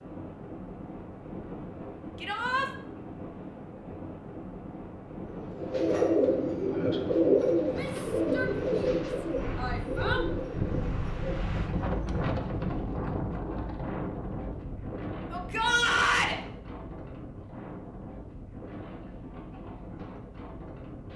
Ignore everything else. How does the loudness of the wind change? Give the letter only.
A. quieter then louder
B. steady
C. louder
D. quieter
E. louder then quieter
E.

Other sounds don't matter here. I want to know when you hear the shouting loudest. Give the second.
16 s.